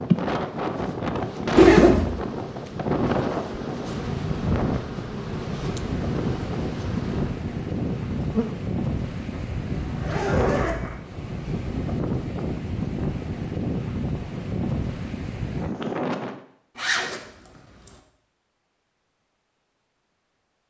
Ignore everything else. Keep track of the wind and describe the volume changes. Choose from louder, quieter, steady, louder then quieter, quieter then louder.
steady.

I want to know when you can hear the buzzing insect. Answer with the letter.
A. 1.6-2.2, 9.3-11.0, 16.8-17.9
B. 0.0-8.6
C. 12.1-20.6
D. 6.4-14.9
B.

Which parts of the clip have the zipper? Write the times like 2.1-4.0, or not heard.
1.6-2.2, 9.3-11.0, 16.8-17.9.